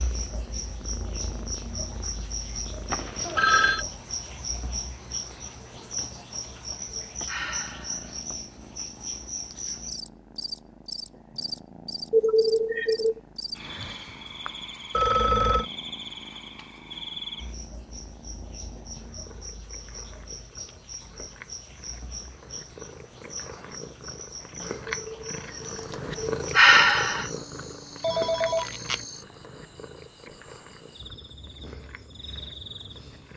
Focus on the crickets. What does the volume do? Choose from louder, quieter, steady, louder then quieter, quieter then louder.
quieter.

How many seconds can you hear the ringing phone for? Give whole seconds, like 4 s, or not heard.
3 s.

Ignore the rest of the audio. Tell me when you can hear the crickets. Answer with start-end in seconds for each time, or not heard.
0.0-33.3.